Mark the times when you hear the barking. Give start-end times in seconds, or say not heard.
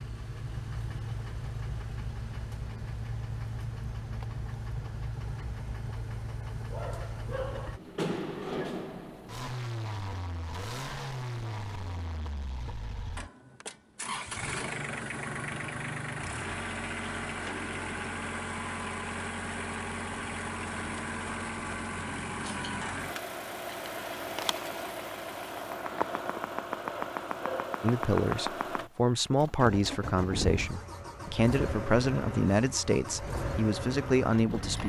6.7-7.8, 26.8-27.8.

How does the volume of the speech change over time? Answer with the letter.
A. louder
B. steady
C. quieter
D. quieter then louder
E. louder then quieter
B.